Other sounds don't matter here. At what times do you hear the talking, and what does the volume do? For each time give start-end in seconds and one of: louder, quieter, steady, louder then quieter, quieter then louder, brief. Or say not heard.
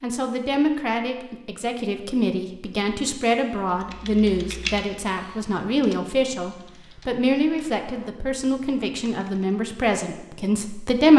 0.0-11.1 steady.